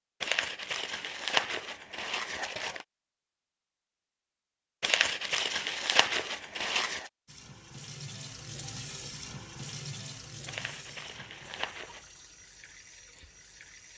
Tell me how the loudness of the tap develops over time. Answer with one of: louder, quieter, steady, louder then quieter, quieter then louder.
quieter.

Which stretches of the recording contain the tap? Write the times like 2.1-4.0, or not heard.
7.2-13.9.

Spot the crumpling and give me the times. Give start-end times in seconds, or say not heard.
0.2-2.9, 4.8-7.1, 10.4-12.1.